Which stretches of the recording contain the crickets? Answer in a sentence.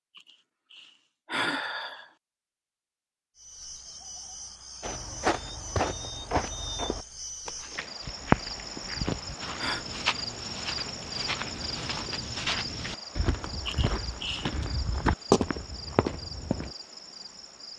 The crickets can be heard from 3.4 to 17.7 s.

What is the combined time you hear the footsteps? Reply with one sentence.
You can hear the footsteps for 12 seconds altogether.